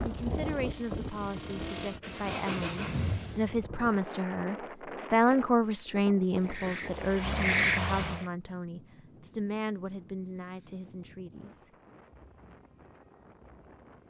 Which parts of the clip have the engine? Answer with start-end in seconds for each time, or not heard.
0.0-3.6, 6.3-8.2.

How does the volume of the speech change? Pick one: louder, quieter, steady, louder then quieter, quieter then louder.
louder then quieter.